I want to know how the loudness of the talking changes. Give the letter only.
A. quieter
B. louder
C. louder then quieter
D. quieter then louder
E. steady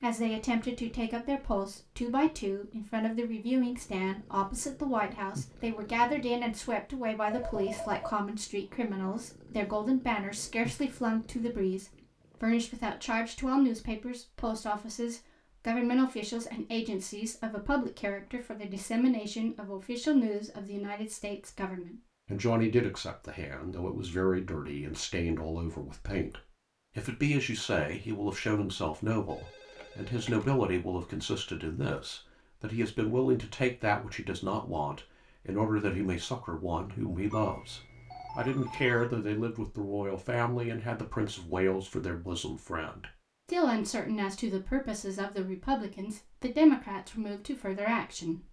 E.